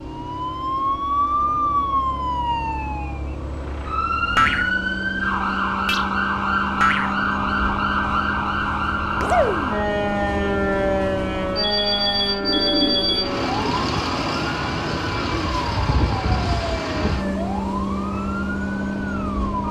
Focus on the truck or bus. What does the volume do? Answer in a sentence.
The loudness of the truck or bus goes up.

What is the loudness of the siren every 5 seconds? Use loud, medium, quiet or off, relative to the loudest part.
loud, loud, loud, medium.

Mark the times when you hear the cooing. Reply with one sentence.
The cooing can be heard from 12.4 to 13.8 s.